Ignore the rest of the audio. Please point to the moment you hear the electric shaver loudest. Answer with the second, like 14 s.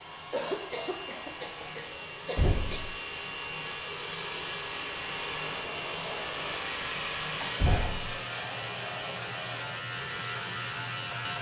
11 s.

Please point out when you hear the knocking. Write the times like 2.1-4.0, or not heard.
2.4-2.9, 7.6-8.2.